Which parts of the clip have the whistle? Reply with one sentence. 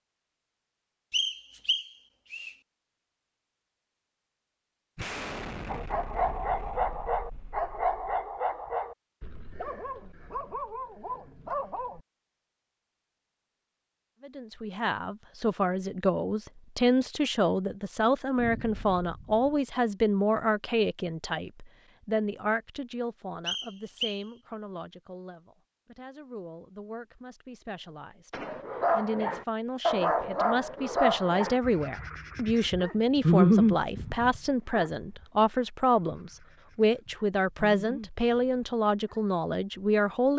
You can hear the whistle from 1.1 to 2.5 s and from 23.4 to 24.2 s.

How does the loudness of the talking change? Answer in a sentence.
The loudness of the talking goes down, then up.